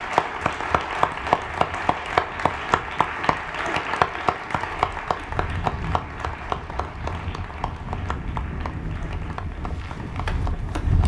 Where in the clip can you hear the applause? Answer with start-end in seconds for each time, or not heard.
0.0-11.0.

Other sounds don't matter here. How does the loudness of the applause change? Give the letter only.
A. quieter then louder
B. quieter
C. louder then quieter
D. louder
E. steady
B.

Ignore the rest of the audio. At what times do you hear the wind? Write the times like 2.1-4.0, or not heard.
0.0-11.0.